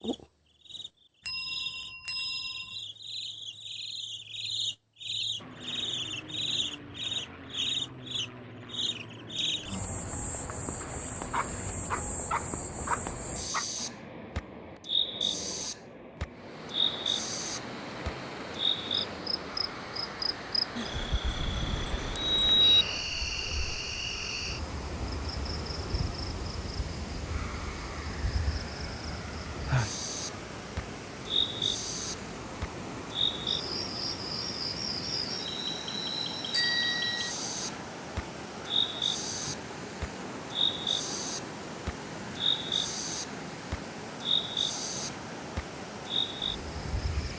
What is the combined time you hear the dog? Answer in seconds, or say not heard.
3 s.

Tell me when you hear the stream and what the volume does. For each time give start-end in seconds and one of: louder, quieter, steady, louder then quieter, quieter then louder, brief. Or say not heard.
16.3-47.3 steady.